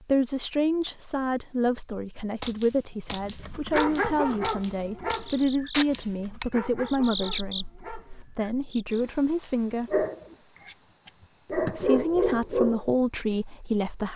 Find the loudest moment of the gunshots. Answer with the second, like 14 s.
6 s.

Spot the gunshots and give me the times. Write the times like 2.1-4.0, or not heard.
2.4-6.5.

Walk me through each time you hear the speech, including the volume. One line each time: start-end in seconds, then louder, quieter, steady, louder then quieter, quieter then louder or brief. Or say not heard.
0.1-10.1 steady
11.6-14.1 brief.